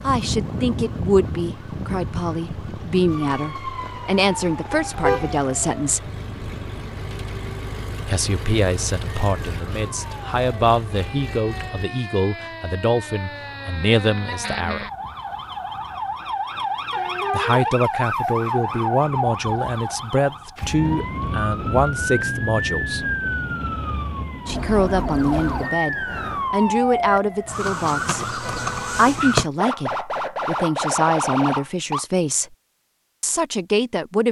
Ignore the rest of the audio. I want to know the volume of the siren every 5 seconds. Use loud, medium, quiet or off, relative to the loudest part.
medium, quiet, medium, loud, loud, loud, loud.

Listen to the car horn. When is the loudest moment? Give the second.
5 s.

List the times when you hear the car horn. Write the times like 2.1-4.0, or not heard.
4.7-5.4, 16.9-17.8, 28.4-29.1.